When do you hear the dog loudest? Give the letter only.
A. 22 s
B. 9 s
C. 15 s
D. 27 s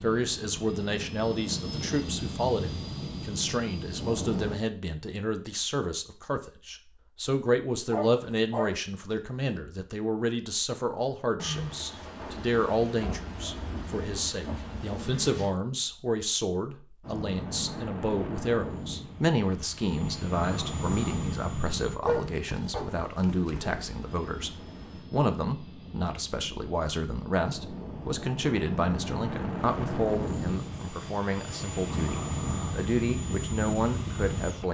A.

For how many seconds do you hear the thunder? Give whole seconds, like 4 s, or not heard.
7 s.